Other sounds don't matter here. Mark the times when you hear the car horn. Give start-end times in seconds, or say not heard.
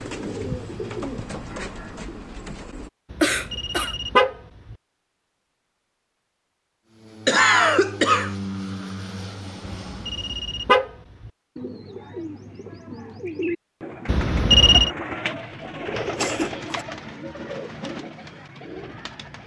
3.1-4.8, 9.7-11.3, 14.1-14.9.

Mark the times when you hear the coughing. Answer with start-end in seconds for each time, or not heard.
3.2-4.0, 7.2-8.3, 15.7-16.9.